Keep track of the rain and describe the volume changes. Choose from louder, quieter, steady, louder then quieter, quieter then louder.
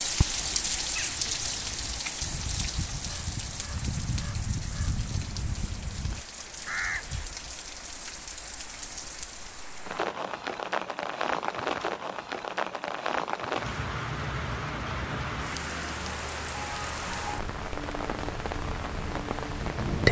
quieter then louder.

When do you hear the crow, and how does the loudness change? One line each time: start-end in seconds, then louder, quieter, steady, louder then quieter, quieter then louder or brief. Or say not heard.
0.3-7.3 louder.